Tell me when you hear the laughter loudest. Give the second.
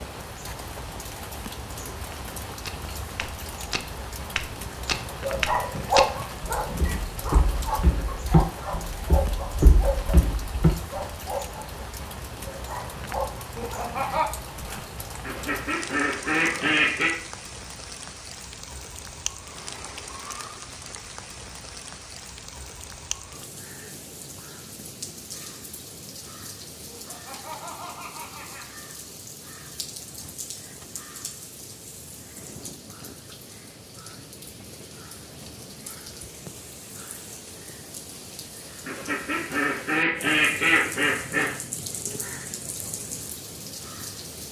14 s.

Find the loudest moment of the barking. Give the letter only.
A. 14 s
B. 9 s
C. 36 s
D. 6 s
D.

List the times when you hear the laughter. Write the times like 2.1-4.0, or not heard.
13.6-14.3, 26.9-28.6.